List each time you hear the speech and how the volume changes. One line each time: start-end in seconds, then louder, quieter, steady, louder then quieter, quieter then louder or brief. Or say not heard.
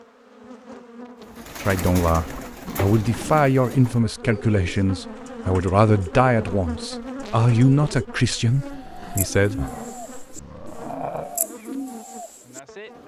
1.6-9.6 steady.